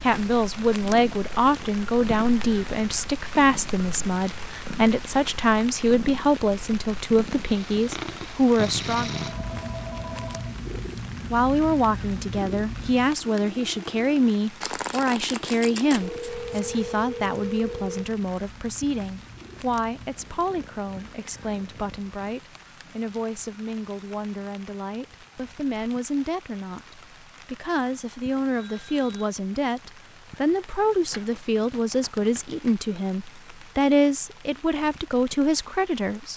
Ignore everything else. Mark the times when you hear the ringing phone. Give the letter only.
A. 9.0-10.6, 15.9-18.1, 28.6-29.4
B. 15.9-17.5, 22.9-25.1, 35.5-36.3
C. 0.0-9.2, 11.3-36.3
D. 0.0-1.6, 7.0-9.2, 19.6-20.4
A.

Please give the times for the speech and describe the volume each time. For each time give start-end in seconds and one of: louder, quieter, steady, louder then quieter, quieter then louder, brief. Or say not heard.
0.0-9.2 steady
11.3-36.3 quieter then louder.